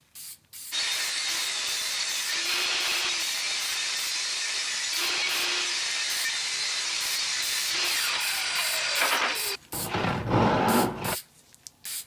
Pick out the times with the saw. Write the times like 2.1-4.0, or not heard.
0.7-11.2.